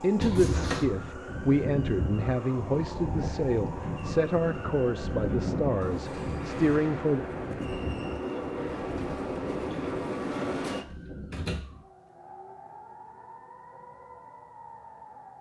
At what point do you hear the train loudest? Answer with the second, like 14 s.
10 s.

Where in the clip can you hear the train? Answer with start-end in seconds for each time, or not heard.
0.0-10.8.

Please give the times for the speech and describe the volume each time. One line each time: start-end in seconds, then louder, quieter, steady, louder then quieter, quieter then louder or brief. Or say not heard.
0.0-7.2 steady.